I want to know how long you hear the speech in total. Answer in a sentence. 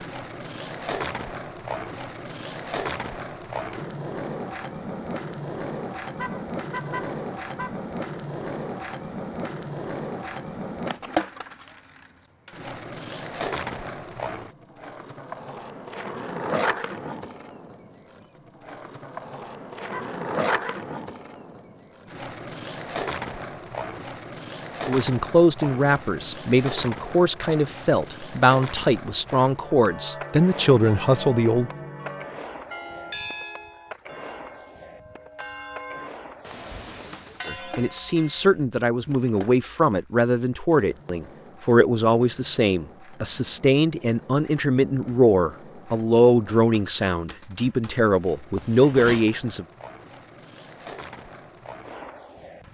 The speech can be heard for 19 seconds in total.